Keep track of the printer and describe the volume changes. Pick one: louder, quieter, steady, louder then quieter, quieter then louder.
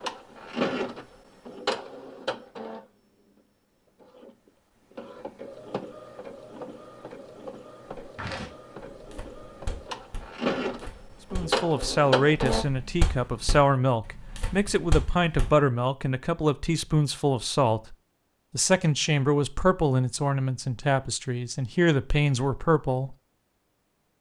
quieter then louder.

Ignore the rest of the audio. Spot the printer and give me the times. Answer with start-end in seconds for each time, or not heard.
0.0-12.7.